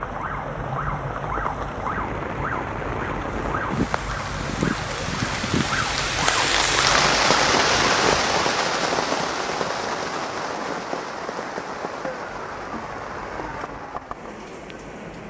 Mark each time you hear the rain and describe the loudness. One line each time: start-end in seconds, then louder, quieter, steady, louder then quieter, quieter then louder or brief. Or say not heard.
0.0-15.2 louder then quieter.